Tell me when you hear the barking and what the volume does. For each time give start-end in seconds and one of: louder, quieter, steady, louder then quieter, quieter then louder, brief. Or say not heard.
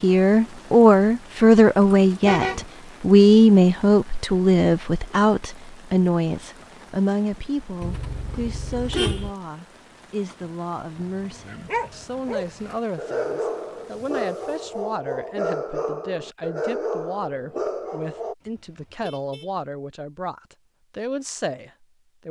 10.9-18.4 steady.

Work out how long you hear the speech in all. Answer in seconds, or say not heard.
22 s.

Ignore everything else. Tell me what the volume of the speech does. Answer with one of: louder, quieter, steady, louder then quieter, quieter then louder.
quieter.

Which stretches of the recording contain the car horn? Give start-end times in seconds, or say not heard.
2.2-2.6, 7.8-9.3, 18.4-19.5.